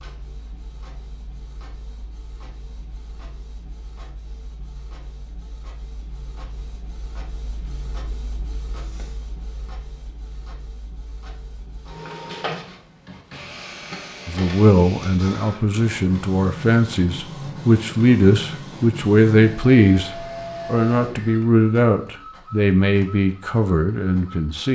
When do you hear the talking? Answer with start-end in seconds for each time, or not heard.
14.2-24.7.